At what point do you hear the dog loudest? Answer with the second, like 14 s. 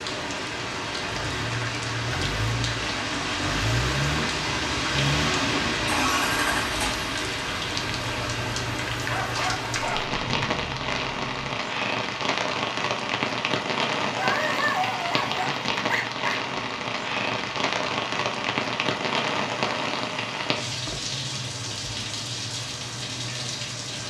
15 s.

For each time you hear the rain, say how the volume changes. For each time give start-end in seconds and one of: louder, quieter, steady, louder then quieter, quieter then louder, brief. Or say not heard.
0.0-24.0 steady.